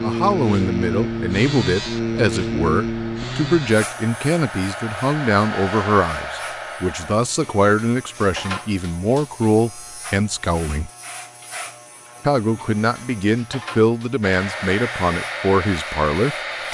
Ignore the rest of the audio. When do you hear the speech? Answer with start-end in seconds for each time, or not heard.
0.0-10.9, 12.2-16.6.